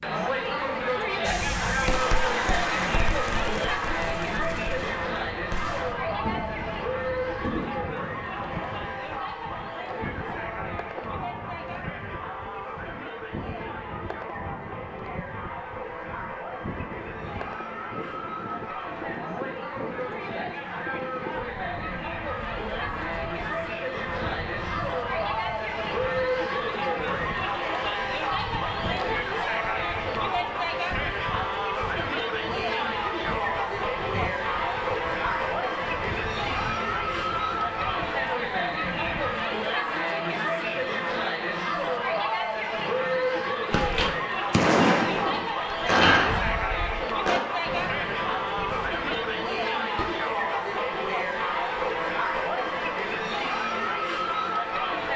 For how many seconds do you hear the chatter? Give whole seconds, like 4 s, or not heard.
55 s.